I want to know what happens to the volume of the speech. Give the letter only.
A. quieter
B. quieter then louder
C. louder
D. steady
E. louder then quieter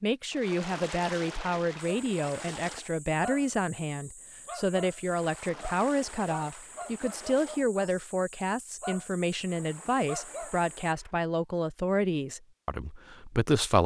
D.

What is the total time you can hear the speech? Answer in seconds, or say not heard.
14 s.